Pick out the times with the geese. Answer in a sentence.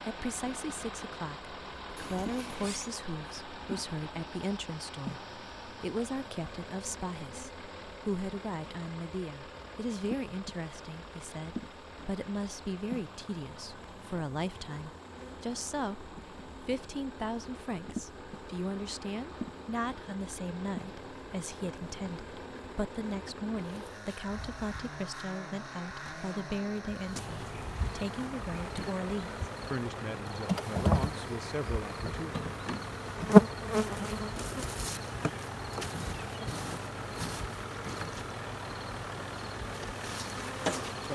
You can't hear the geese here.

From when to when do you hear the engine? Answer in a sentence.
You can hear the engine from 0.0 to 41.1 s.